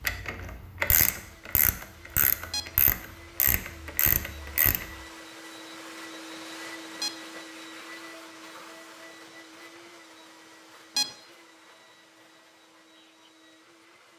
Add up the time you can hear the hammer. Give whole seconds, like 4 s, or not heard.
not heard.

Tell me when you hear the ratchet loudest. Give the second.
1 s.